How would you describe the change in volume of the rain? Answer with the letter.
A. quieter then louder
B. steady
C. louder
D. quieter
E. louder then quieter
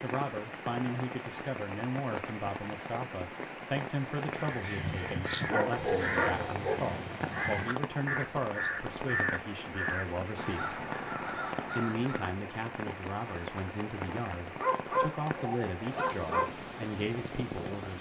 B.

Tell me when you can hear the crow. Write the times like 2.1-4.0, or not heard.
4.2-12.3.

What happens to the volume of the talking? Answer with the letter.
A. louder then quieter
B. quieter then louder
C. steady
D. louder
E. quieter
C.